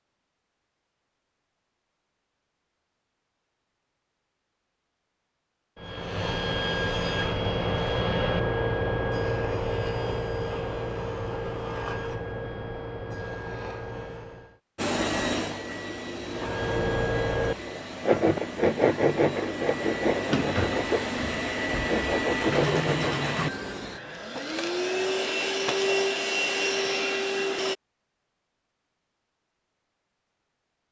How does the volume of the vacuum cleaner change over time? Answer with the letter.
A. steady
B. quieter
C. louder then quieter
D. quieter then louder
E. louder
E.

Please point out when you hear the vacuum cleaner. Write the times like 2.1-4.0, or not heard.
14.8-27.8.